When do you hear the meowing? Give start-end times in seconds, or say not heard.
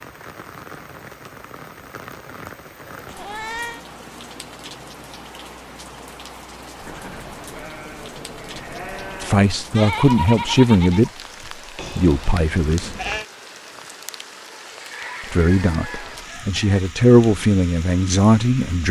3.1-3.9.